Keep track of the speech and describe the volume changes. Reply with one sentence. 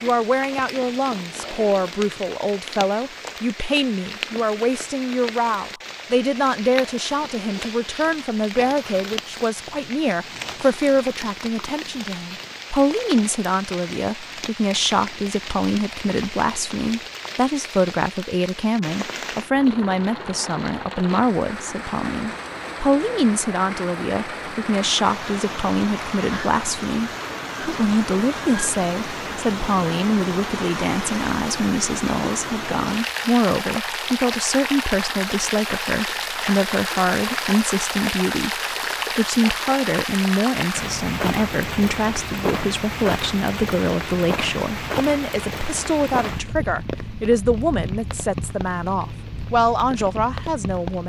The volume of the speech stays about the same.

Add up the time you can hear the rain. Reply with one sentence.
The rain can be heard for 51 seconds in total.